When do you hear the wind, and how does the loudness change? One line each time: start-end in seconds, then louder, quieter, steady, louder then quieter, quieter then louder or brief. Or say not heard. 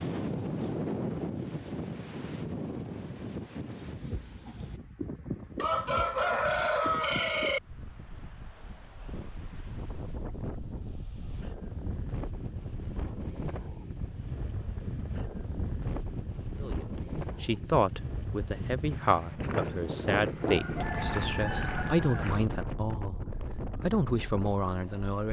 0.0-25.2 quieter then louder.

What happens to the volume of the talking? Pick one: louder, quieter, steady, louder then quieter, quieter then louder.
steady.